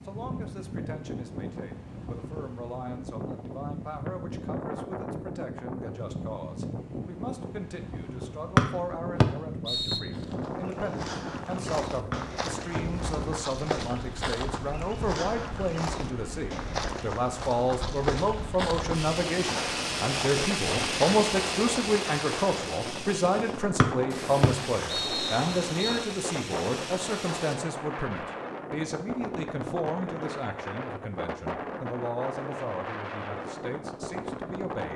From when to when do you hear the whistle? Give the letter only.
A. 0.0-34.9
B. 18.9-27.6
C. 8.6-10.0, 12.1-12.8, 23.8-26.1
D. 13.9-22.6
C.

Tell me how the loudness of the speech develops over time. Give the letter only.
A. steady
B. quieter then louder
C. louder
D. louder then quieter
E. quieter
D.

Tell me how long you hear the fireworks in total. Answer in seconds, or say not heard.
9 s.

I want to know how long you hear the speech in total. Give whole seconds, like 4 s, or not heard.
35 s.